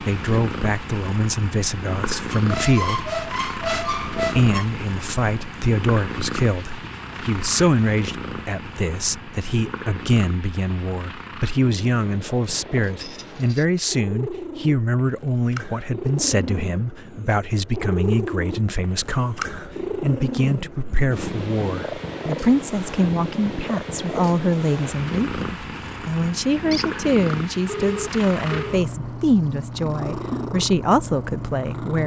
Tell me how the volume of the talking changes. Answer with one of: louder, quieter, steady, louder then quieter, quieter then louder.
steady.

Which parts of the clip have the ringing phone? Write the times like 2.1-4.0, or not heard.
27.6-28.8.